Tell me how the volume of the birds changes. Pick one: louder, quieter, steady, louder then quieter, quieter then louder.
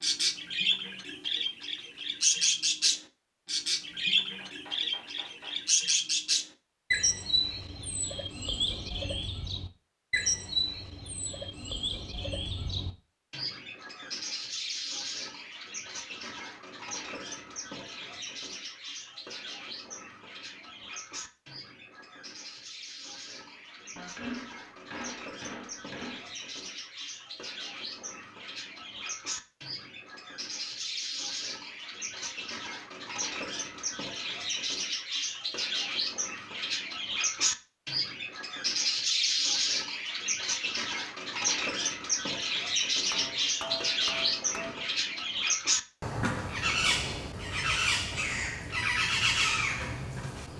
quieter then louder.